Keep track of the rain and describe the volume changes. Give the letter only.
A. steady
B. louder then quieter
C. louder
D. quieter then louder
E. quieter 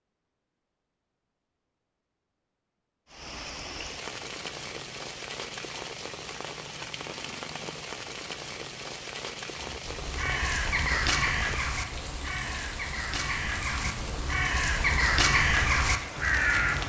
A.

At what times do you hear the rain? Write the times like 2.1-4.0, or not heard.
3.0-16.8.